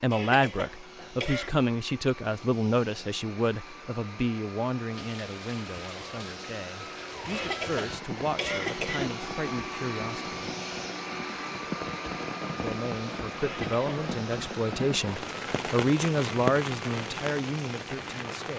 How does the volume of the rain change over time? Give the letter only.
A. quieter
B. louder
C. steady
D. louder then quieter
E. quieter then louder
B.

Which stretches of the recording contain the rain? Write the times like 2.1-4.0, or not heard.
4.9-18.5.